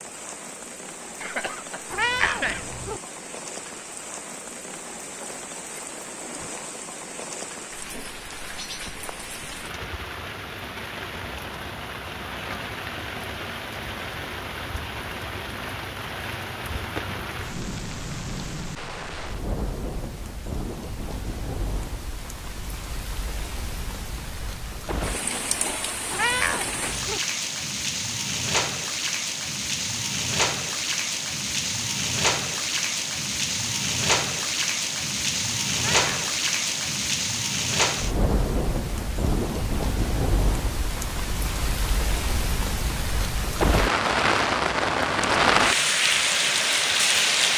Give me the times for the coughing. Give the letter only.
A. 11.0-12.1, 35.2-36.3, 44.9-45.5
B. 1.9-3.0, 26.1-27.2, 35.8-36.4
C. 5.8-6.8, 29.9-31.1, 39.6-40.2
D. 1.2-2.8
D.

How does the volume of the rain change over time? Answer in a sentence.
The loudness of the rain goes up.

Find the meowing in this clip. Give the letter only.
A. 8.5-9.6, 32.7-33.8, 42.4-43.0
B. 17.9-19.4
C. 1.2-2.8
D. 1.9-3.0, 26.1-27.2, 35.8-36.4
D.